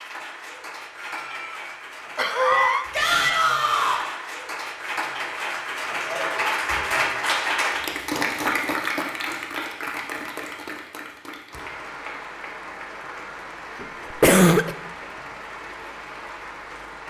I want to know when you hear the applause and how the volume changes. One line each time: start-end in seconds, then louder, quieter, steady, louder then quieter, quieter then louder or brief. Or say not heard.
0.0-17.0 louder then quieter.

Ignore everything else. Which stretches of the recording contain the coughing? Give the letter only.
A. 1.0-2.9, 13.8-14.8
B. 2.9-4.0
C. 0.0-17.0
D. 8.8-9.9
A.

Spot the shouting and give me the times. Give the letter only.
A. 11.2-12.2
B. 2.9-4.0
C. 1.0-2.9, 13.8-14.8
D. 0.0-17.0
B.